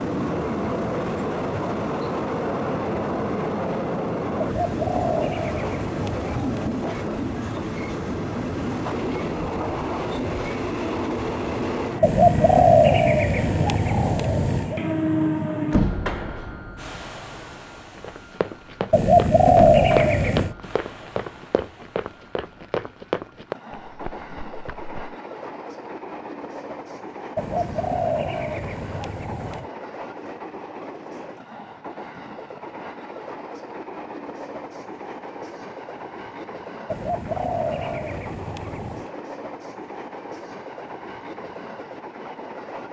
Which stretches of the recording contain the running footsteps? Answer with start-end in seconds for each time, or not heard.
17.8-25.1.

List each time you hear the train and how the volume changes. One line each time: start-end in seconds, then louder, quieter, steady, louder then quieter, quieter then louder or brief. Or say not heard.
0.0-42.8 quieter.